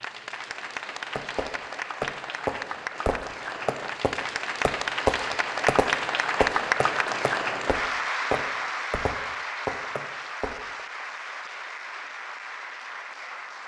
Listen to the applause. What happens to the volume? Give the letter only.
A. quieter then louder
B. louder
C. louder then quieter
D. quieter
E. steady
C.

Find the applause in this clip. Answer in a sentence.
The applause can be heard from 0.0 to 13.6 s.